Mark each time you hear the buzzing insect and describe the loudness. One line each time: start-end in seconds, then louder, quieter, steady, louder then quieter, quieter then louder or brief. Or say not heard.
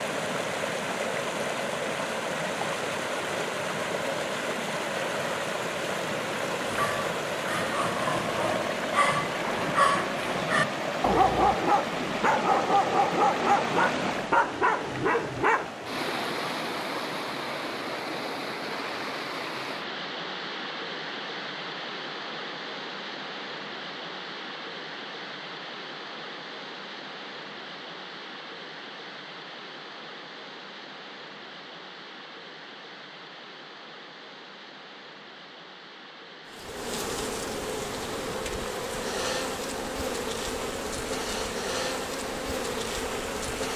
36.5-43.7 steady.